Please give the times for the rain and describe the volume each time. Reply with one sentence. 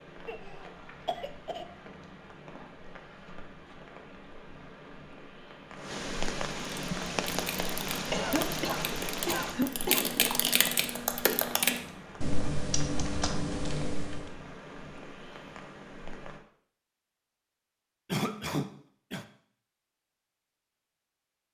The rain can be heard from 0.0 to 16.4 s, getting louder then quieter.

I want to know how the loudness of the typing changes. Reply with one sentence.
The volume of the typing goes up.